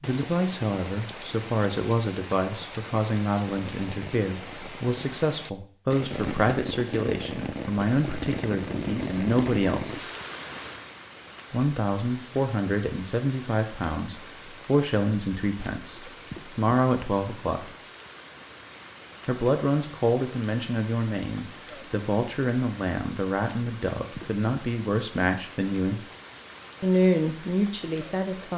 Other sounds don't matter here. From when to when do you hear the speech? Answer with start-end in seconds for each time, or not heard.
0.0-10.1, 11.5-17.7, 19.2-26.0, 26.8-28.5.